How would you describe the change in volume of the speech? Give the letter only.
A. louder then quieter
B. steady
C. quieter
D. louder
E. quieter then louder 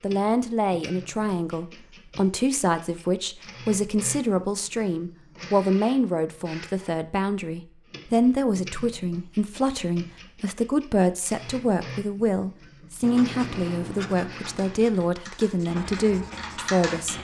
B.